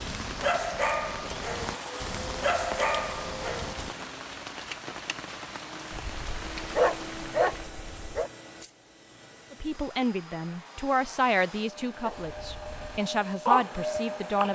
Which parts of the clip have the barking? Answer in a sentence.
The barking can be heard from 0.0 to 4.0 s, from 5.9 to 8.3 s and from 12.0 to 14.5 s.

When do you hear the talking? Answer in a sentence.
The talking can be heard from 9.5 to 14.5 s.